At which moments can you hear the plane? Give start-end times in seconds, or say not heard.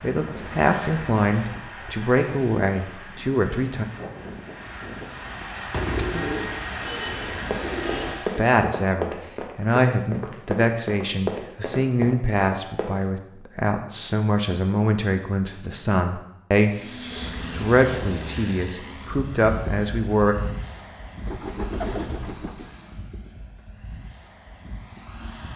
0.0-8.5, 16.7-25.5.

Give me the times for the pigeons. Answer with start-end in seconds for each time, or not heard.
5.7-8.2, 21.2-22.7.